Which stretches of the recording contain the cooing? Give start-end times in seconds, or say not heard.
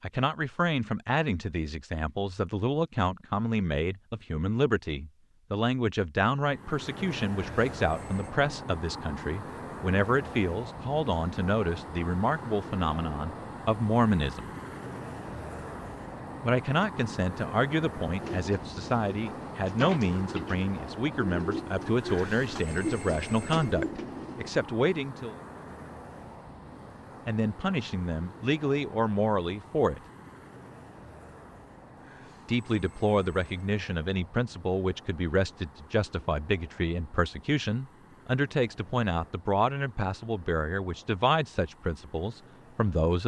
18.1-24.6.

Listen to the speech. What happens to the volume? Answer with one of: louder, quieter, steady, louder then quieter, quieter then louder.
steady.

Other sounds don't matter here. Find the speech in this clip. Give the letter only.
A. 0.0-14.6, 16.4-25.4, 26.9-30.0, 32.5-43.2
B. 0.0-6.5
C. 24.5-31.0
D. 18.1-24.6
A.